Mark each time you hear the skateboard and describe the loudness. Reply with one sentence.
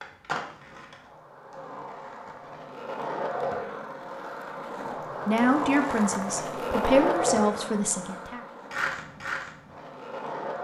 You can hear the skateboard from 0.0 to 10.5 s, getting louder then quieter.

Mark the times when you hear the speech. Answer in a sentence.
The speech can be heard from 5.2 to 8.4 s.